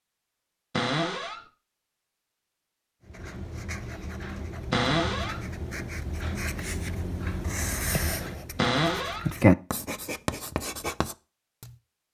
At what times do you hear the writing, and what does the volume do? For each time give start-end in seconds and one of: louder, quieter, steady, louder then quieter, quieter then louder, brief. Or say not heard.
3.0-11.8 louder then quieter.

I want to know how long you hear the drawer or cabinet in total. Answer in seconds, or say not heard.
2 s.